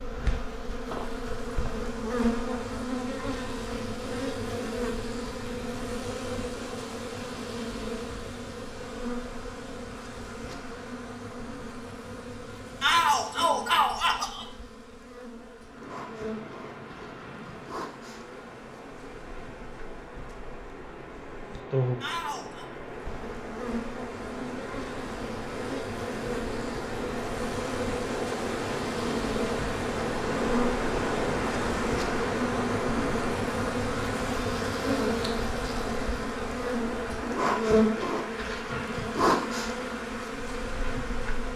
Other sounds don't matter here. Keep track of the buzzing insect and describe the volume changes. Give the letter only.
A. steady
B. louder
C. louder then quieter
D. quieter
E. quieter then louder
E.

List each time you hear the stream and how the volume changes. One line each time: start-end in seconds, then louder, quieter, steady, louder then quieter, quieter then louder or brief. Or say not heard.
15.6-41.5 louder then quieter.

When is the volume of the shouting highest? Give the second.
13 s.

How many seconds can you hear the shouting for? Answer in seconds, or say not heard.
2 s.